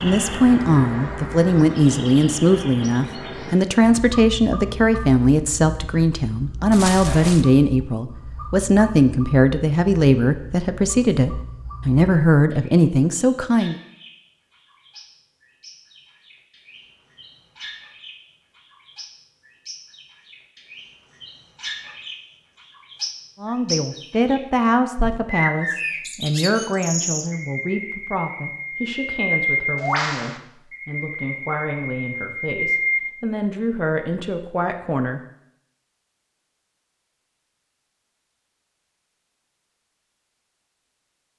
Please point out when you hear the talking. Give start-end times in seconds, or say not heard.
0.0-13.8, 23.4-35.2.